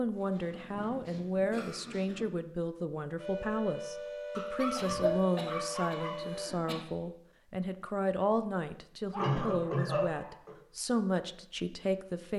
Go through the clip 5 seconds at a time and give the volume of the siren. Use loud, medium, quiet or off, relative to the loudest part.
loud, loud, off.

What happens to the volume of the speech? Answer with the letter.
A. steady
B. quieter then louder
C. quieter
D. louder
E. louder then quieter
A.